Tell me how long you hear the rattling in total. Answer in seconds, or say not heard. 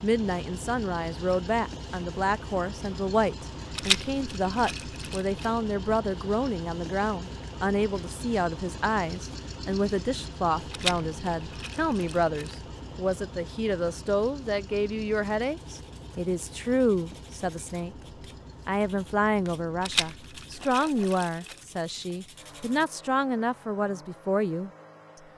5 s.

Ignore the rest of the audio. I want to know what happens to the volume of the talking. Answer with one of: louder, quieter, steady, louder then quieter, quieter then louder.
steady.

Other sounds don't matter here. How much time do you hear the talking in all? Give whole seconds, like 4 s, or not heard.
24 s.